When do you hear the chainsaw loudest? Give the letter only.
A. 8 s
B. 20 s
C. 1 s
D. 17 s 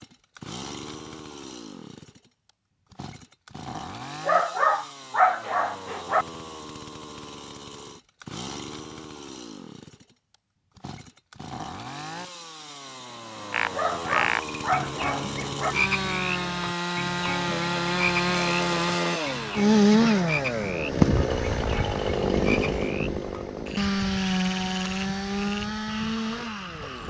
B.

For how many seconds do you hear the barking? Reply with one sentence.
You can hear the barking for 4 seconds altogether.